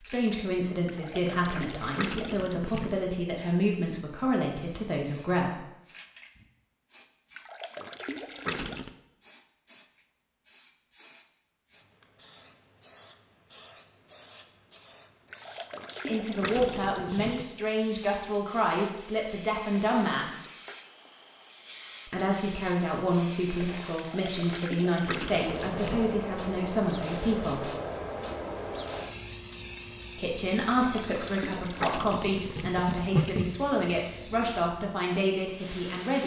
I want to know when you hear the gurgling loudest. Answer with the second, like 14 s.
33 s.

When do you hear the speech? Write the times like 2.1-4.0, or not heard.
0.0-5.7, 16.1-20.3, 22.1-27.7, 30.1-36.2.